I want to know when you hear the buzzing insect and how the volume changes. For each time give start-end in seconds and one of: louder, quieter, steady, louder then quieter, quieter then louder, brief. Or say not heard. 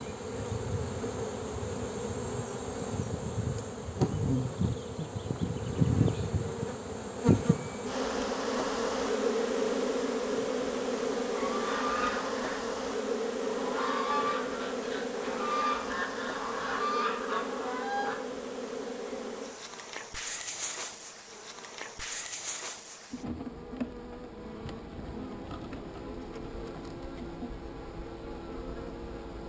0.0-29.4 quieter.